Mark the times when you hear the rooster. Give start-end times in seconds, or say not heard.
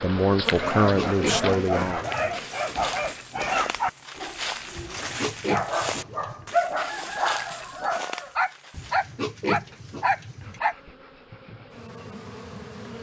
6.8-8.4.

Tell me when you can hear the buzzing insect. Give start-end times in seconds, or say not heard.
0.0-3.1, 10.4-12.9.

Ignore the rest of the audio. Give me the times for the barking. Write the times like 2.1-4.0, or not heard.
0.5-10.8.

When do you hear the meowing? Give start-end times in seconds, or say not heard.
not heard.